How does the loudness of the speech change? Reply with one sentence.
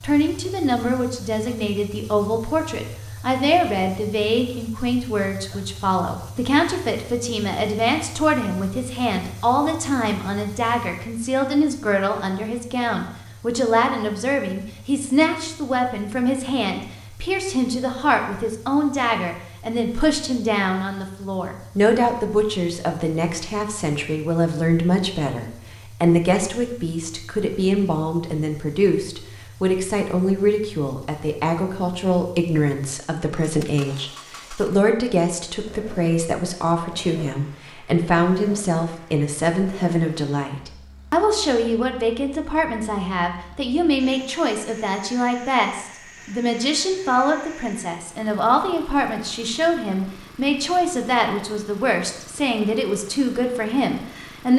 The volume of the speech stays about the same.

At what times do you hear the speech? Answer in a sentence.
The speech can be heard from 0.0 to 54.5 s.